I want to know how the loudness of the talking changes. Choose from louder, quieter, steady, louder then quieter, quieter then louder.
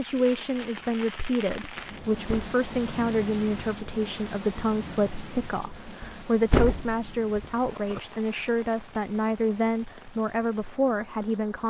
steady.